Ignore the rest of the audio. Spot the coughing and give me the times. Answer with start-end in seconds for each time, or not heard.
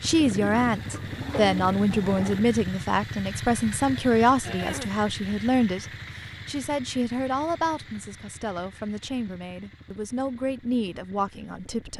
4.4-5.0.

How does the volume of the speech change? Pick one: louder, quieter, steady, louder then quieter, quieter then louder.
quieter.